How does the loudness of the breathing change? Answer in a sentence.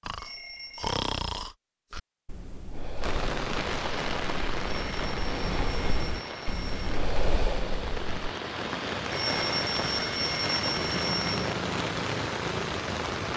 The loudness of the breathing goes down, then up.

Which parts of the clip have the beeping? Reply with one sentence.
You can hear the beeping from 0.1 to 0.9 s, from 4.8 to 6.9 s and from 9.1 to 11.3 s.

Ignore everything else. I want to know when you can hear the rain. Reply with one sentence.
You can hear the rain from 3.0 to 13.3 s.